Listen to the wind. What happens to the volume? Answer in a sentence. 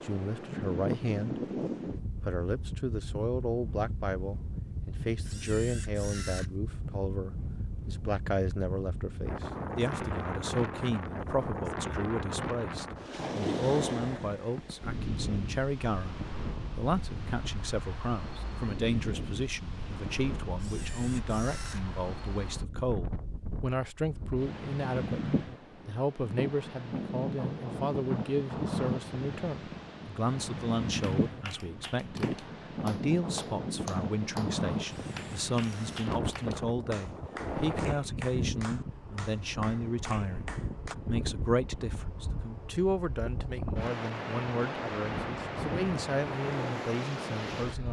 The volume of the wind stays about the same.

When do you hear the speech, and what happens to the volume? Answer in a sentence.
You can hear the speech briefly from 0.0 to 1.4 s; and from 2.2 to 47.8 s, at a steady volume.